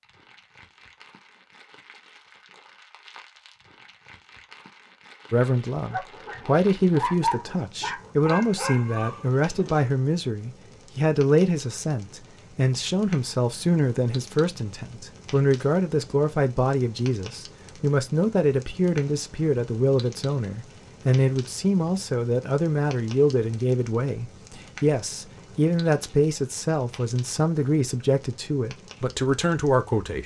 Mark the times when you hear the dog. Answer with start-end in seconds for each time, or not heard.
5.8-9.9.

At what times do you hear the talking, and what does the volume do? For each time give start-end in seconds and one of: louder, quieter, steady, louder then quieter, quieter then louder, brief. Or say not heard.
5.3-30.2 steady.